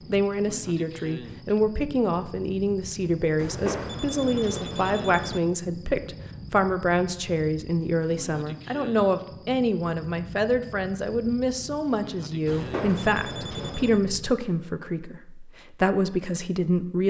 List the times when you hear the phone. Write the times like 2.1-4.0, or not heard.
3.4-5.4, 12.4-14.0.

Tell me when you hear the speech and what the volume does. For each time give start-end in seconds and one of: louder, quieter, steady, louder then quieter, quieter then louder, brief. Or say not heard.
0.1-17.0 steady.